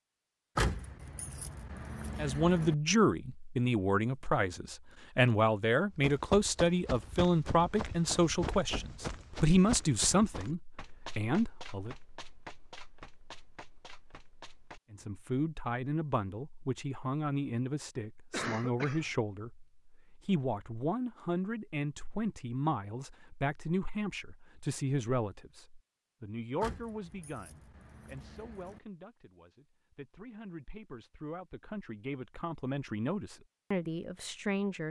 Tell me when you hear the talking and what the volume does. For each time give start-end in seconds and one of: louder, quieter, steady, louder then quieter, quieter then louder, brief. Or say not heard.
2.1-11.9 steady
14.9-34.8 quieter then louder.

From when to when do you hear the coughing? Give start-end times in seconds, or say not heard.
18.3-19.1.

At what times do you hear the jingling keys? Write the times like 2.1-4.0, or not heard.
0.6-2.8, 26.6-28.8.